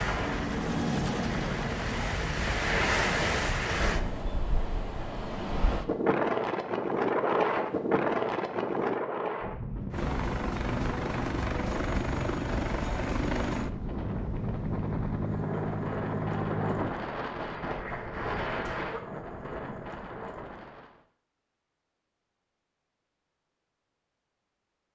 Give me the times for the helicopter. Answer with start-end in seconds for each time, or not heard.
0.0-3.5, 9.9-16.9.